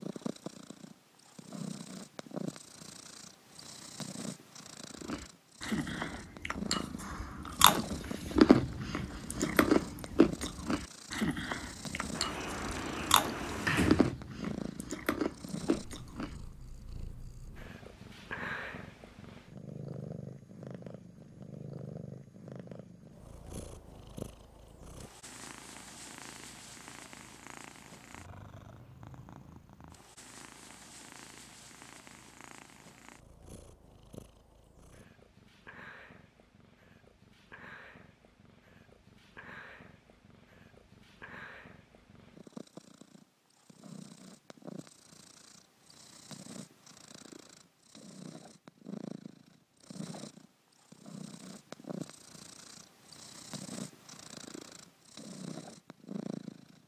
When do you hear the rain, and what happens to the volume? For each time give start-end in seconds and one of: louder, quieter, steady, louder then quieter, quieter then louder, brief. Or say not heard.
not heard.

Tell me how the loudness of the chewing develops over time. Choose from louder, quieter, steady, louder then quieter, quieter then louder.
louder then quieter.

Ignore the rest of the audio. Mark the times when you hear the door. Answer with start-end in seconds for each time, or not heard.
12.1-14.2.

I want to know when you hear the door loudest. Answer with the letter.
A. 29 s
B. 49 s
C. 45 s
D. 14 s
D.